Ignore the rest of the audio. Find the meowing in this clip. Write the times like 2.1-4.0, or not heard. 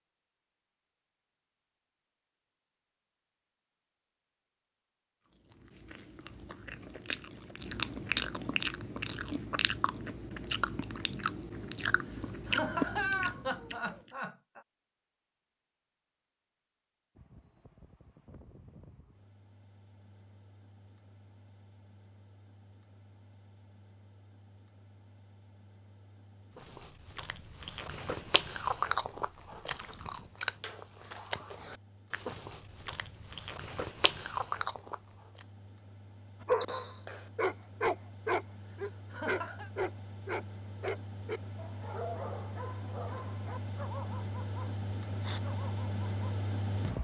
not heard.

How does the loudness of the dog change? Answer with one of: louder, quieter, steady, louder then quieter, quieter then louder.
quieter.